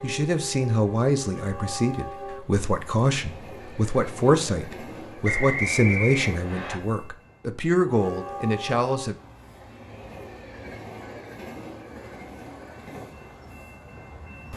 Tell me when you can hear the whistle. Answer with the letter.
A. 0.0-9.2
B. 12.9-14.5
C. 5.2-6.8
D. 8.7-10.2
C.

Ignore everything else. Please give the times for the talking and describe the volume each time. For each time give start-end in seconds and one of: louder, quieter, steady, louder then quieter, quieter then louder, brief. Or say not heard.
0.0-9.2 steady.